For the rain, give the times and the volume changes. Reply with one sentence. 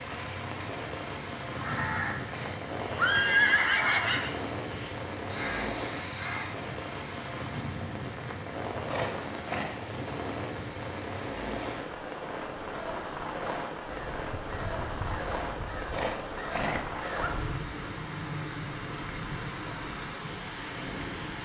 You can hear the rain from 0.0 to 21.4 s, at a steady volume.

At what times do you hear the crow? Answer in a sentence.
The crow can be heard from 1.4 to 6.8 s and from 13.8 to 17.4 s.